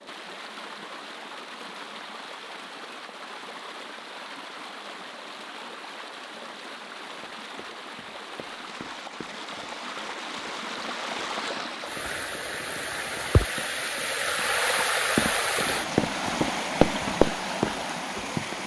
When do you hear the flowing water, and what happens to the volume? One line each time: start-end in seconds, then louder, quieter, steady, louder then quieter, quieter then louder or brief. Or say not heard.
0.0-18.6 louder.